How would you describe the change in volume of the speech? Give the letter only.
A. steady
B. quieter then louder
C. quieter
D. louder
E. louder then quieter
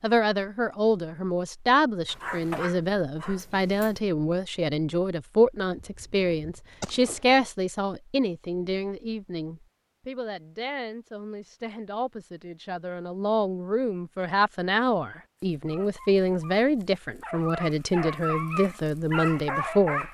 B.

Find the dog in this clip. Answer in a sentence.
You can hear the dog from 2.0 to 4.0 s and from 15.5 to 20.0 s.